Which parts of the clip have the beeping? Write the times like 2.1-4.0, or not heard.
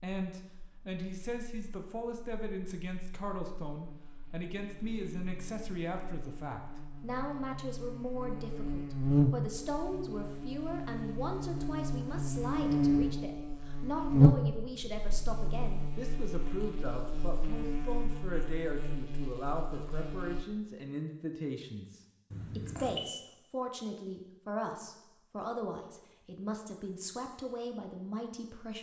22.3-23.1.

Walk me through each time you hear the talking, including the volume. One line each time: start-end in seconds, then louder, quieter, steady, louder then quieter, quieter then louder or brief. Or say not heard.
0.0-28.7 steady.